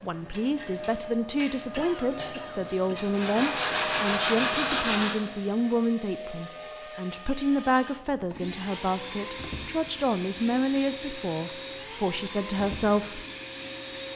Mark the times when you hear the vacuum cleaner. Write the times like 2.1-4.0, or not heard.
0.0-14.1.